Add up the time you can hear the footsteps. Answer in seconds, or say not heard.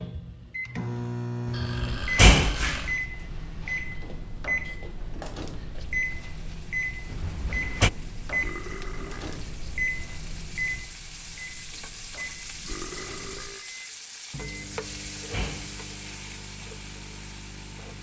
not heard.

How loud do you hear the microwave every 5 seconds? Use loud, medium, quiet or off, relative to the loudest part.
loud, loud, medium, quiet.